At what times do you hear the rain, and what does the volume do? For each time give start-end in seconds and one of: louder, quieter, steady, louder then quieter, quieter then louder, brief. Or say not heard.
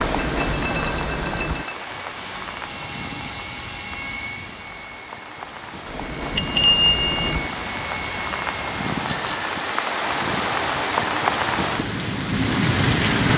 0.0-13.3 quieter then louder.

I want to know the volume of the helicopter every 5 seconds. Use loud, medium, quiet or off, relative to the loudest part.
loud, loud, off.